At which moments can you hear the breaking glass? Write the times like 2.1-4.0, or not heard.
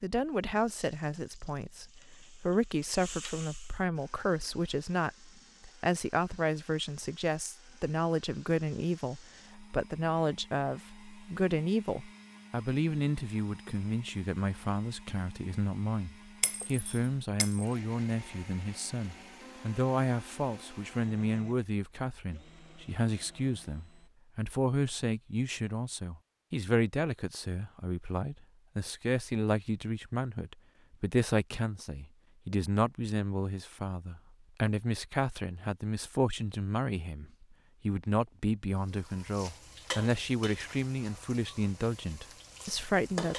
16.4-17.6.